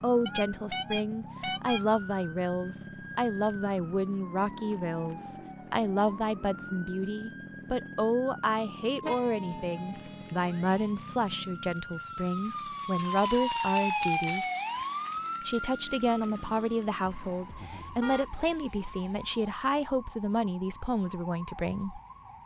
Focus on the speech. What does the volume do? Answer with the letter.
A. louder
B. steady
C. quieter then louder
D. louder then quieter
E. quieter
B.